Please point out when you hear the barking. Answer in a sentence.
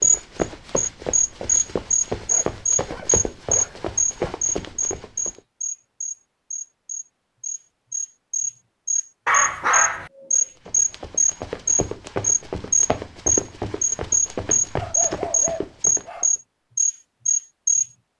You can hear the barking from 2.2 to 4.3 s, from 9.2 to 10.1 s and from 14.8 to 16.3 s.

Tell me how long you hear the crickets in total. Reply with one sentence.
The crickets can be heard for 18 seconds in total.